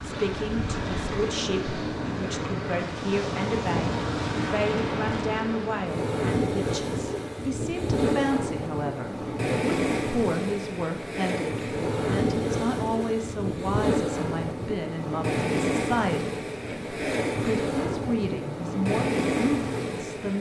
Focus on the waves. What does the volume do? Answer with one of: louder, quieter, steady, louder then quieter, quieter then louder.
steady.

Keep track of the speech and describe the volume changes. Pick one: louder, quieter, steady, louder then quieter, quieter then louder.
steady.